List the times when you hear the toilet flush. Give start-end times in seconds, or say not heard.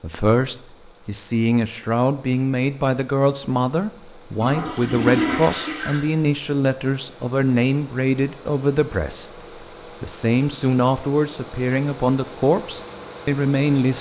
4.4-6.0.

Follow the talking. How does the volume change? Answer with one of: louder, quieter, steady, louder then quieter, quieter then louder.
steady.